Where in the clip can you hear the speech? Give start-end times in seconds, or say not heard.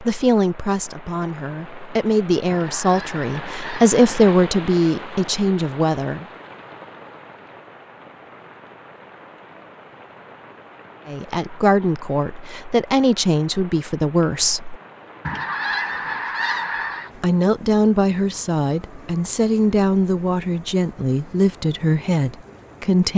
0.0-6.2, 11.1-14.8, 17.2-23.1.